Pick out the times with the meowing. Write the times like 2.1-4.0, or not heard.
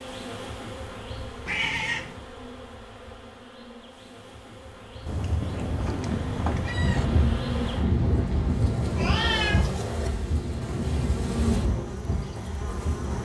1.4-2.2, 5.0-7.0, 8.9-10.1.